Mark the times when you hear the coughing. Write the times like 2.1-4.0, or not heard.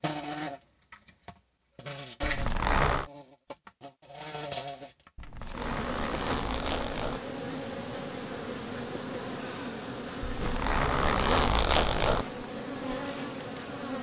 not heard.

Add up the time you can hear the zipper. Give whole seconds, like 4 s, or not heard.
5 s.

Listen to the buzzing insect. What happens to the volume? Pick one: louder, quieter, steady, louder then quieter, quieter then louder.
steady.